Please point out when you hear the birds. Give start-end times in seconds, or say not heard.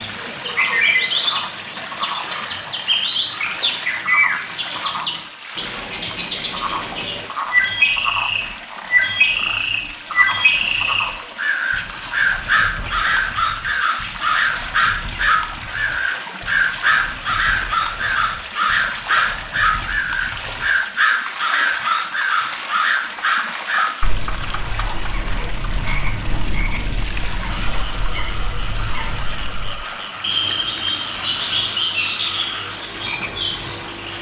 0.0-34.1.